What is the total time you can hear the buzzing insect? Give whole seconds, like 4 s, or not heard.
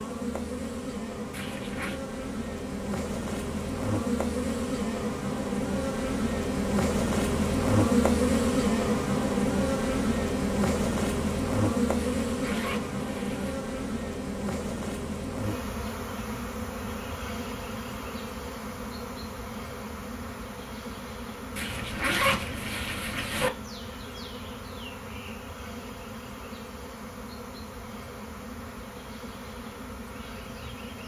31 s.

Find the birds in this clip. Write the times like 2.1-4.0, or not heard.
not heard.